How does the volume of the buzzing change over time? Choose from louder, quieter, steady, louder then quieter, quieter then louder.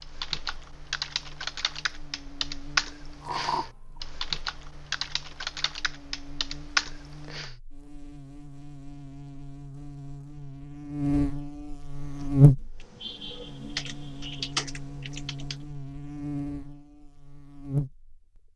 louder then quieter.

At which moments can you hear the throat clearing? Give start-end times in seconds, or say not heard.
3.2-3.7.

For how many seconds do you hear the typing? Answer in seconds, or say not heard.
11 s.